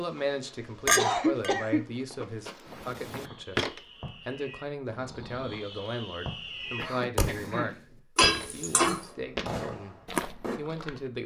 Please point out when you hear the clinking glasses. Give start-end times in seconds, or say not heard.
0.8-1.6, 8.2-9.0.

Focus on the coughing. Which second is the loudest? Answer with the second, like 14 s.
1 s.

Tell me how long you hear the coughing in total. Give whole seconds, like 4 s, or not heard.
2 s.